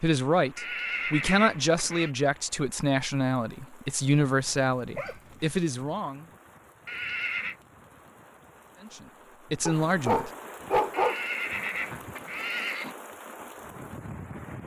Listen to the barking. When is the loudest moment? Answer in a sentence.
The volume of the barking peaks at 11 seconds.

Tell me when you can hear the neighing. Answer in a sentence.
The neighing can be heard from 0.6 to 2.1 s, from 6.8 to 7.5 s and from 10.9 to 12.9 s.